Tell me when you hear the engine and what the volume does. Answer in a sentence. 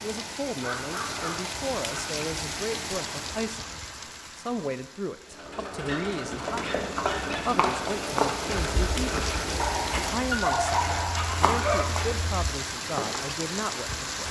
You can hear the engine from 5.2 to 9.9 s, at a steady volume.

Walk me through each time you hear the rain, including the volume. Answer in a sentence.
You can hear the rain from 0.0 to 14.2 s, getting quieter then louder.